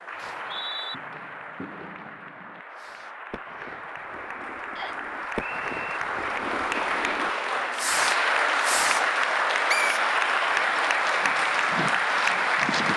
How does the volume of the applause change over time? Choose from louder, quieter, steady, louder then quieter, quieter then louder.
louder.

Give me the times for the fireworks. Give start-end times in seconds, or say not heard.
0.1-9.1.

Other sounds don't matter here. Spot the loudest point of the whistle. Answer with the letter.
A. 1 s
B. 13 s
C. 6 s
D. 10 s
D.